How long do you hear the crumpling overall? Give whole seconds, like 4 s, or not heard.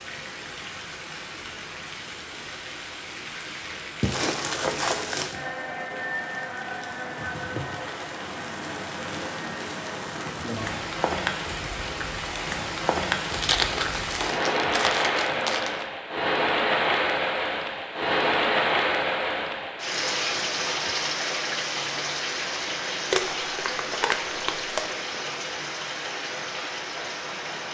6 s.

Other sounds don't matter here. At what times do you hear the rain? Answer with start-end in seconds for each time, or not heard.
0.0-27.6.